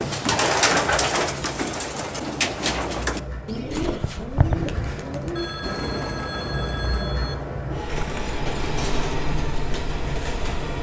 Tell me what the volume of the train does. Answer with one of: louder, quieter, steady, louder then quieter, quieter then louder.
louder.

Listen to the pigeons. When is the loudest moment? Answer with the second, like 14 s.
1 s.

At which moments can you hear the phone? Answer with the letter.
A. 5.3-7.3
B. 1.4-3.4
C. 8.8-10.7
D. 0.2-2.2
A.